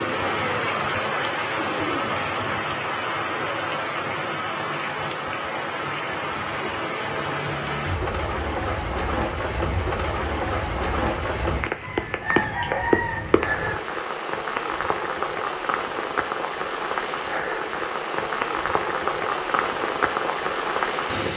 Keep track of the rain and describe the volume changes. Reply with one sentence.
The volume of the rain stays about the same.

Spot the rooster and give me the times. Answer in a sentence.
You can hear the rooster from 11.8 to 13.8 s.